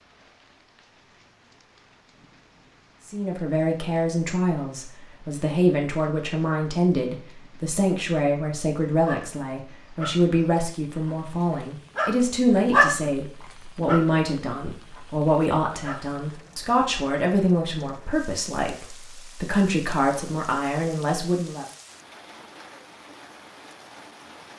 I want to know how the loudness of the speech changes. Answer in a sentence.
The volume of the speech stays about the same.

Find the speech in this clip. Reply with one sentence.
The speech can be heard from 3.0 to 21.6 s.